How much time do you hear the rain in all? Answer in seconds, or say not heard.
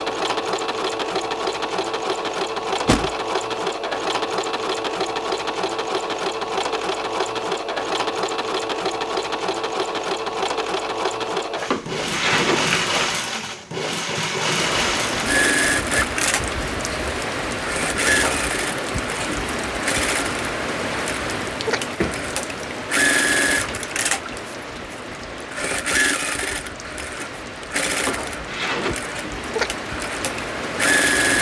17 s.